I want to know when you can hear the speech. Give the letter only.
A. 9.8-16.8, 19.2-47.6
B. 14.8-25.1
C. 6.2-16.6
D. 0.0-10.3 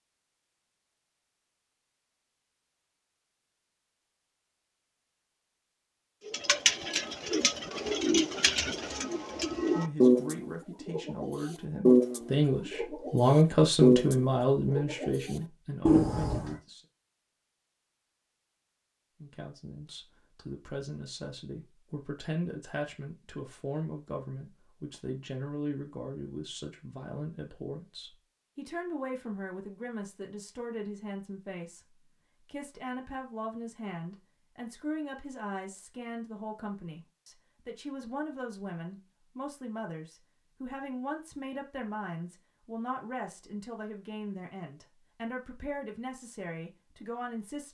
A.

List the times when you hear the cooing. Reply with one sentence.
The cooing can be heard from 6.2 to 16.6 s.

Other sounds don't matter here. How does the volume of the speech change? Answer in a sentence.
The loudness of the speech goes down.